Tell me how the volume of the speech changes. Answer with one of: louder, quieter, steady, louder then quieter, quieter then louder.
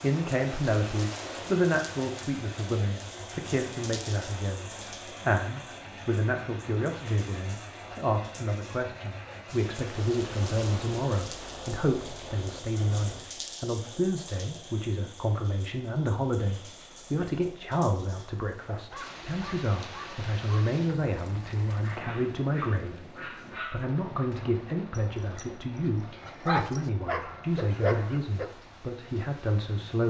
steady.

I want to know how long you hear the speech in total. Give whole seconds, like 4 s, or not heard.
30 s.